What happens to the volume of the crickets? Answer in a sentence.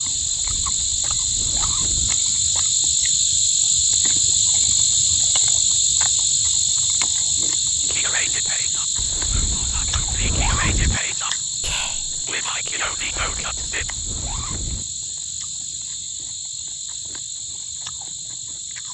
The loudness of the crickets goes down.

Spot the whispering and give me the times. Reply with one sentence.
The whispering can be heard from 7.8 to 13.8 s.